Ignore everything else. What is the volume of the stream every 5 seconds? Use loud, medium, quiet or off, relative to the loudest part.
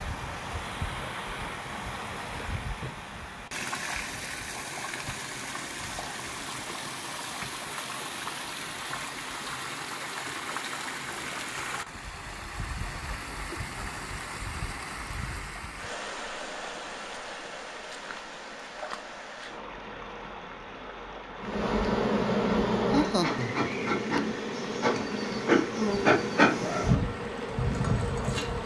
loud, loud, loud, loud, medium, medium.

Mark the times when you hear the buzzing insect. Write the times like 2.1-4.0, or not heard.
21.4-28.6.